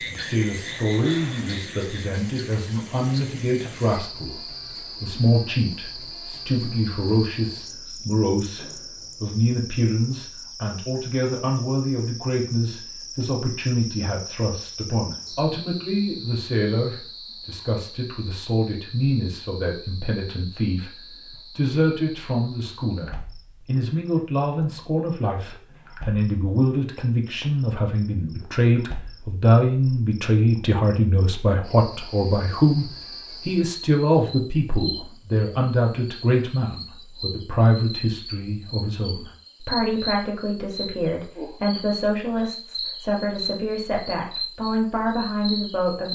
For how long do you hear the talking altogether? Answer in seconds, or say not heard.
46 s.